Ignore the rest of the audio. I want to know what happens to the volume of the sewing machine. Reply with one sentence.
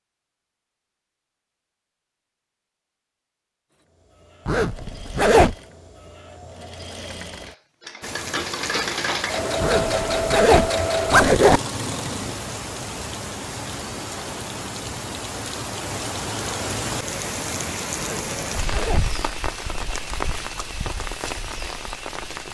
The loudness of the sewing machine goes up.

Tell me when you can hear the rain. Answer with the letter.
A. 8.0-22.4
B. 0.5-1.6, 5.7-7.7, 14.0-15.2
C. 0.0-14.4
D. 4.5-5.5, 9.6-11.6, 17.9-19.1
A.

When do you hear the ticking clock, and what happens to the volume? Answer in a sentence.
You can't hear the ticking clock here.